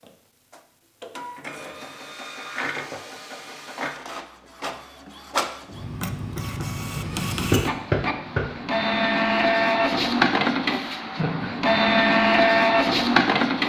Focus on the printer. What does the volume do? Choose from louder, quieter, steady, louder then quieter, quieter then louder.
louder.